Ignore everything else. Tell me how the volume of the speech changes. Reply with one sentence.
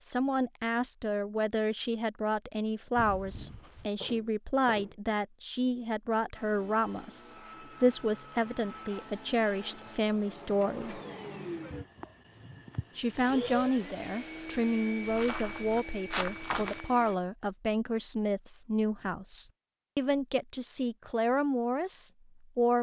The volume of the speech stays about the same.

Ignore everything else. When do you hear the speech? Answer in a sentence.
The speech can be heard from 0.0 to 11.0 s and from 12.9 to 22.7 s.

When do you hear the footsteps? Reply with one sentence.
The footsteps can be heard from 3.0 to 5.0 s and from 15.0 to 16.9 s.